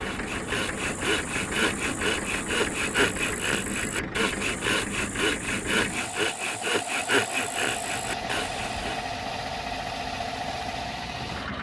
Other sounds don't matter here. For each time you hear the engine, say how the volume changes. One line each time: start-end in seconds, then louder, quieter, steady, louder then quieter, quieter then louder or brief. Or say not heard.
0.0-11.5 steady.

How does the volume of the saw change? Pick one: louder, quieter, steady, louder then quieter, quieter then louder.
steady.